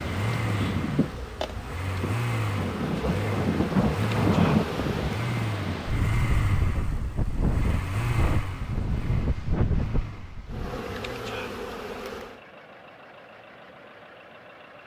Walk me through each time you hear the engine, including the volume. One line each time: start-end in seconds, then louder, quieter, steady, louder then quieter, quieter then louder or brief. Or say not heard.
0.0-14.8 quieter.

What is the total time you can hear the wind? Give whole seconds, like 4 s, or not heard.
11 s.